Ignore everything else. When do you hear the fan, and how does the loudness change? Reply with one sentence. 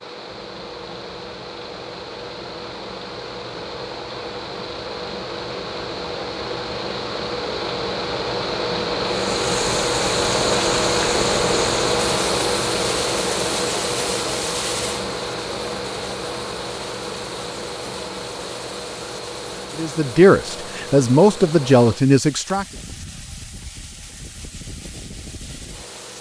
The fan can be heard from 0.0 to 26.1 s, getting louder then quieter.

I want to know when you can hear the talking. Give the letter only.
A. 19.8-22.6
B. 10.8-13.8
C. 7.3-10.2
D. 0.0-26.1
A.